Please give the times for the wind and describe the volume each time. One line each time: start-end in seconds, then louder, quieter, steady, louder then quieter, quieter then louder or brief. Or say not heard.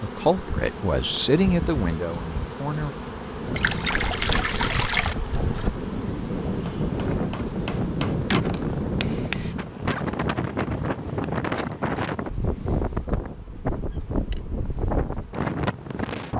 0.0-16.3 louder.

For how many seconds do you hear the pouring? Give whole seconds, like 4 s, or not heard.
2 s.